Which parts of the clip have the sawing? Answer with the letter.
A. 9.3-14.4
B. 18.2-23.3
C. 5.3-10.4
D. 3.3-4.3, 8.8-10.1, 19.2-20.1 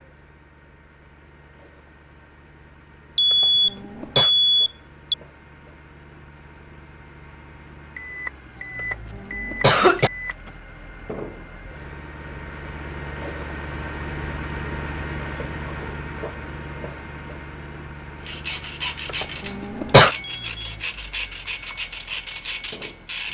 B.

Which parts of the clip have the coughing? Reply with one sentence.
You can hear the coughing from 3.3 to 4.3 s, from 8.8 to 10.1 s and from 19.2 to 20.1 s.